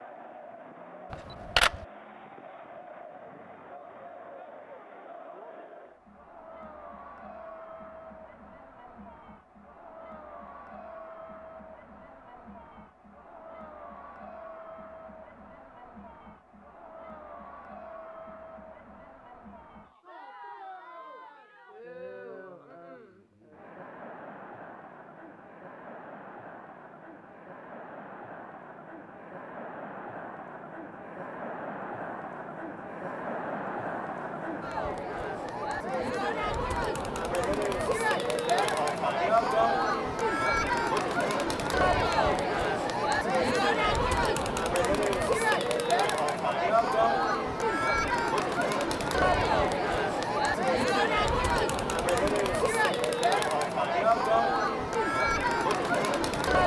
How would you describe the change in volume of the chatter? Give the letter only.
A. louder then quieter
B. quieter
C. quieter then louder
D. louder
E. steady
D.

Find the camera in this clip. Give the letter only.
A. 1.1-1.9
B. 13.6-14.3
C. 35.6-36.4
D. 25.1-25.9
A.